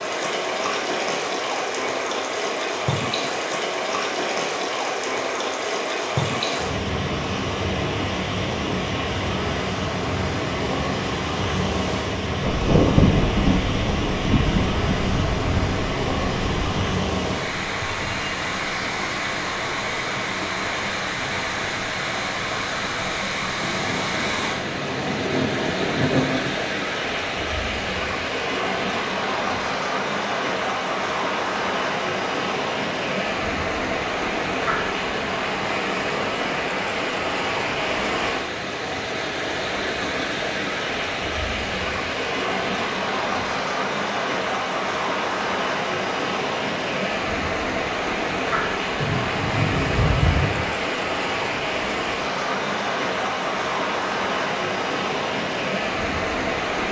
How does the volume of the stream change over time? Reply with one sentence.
The volume of the stream stays about the same.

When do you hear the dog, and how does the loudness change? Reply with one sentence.
You can't hear the dog here.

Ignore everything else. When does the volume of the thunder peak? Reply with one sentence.
The loudest moment of the thunder is at 13 seconds.